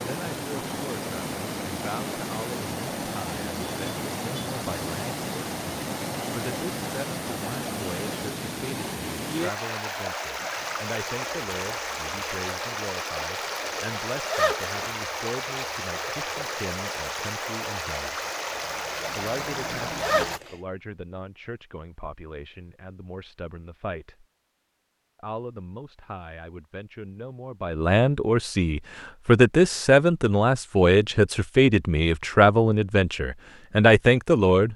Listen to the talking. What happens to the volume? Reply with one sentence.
The volume of the talking goes up.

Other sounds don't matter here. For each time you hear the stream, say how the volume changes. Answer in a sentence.
The stream can be heard from 0.0 to 20.4 s, at a steady volume.